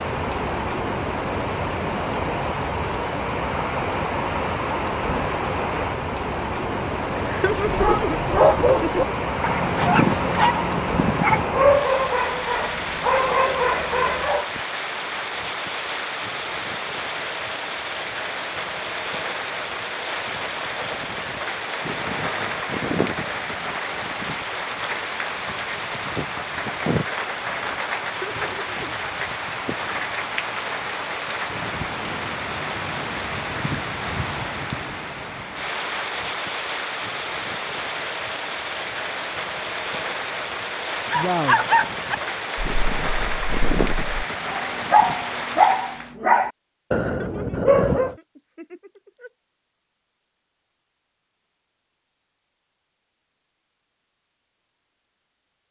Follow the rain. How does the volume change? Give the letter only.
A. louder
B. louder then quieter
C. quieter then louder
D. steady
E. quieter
D.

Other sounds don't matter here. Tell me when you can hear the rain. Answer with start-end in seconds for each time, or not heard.
0.0-46.1.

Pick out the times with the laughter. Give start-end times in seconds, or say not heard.
7.2-9.1, 28.0-28.9, 46.9-49.3.